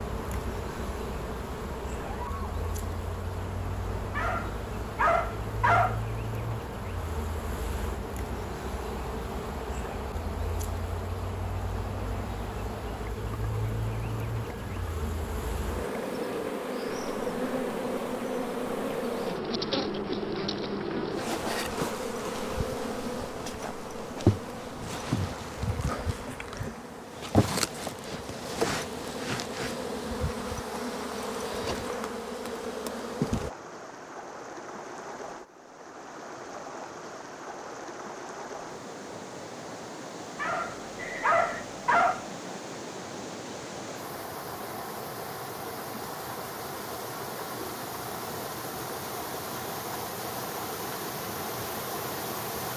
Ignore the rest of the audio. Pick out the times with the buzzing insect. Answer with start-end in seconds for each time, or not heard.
0.0-33.5.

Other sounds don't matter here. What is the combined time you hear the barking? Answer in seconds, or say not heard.
4 s.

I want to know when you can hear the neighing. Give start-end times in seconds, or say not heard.
41.0-41.6.